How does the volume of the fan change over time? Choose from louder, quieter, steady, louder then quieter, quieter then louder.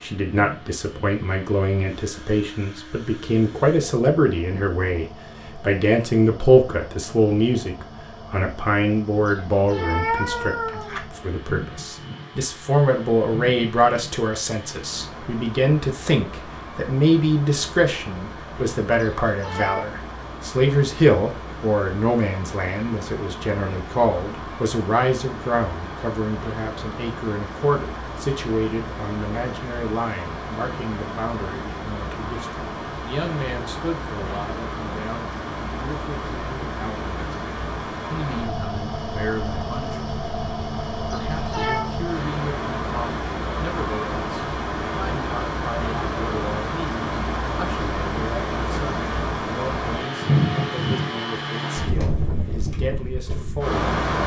louder.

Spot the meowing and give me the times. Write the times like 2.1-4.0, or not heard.
9.2-11.0, 19.0-19.9, 41.1-41.9.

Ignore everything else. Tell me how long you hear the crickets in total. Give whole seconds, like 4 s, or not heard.
not heard.